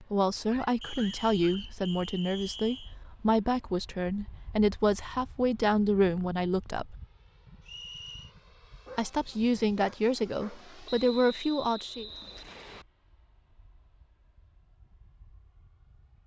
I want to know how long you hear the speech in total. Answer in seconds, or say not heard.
10 s.